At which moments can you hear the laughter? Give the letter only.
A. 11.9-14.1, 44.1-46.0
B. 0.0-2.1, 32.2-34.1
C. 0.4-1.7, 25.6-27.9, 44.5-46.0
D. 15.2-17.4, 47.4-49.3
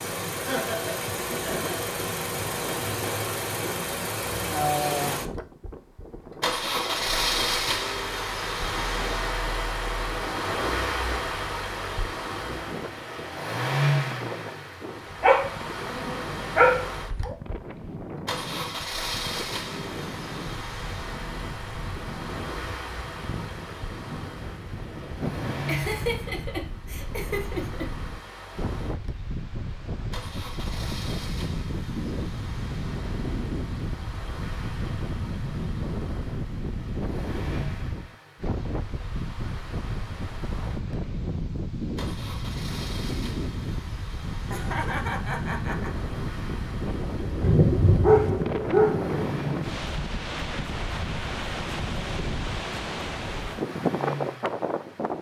C.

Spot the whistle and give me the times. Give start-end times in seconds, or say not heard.
not heard.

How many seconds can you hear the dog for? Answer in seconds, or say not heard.
4 s.